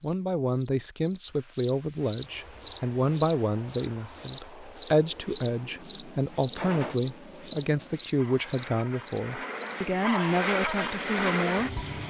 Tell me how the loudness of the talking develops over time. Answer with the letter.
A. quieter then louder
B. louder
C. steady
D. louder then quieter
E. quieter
C.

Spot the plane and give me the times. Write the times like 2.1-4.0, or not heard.
2.1-12.0.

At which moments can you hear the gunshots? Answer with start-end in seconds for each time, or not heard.
6.5-7.0.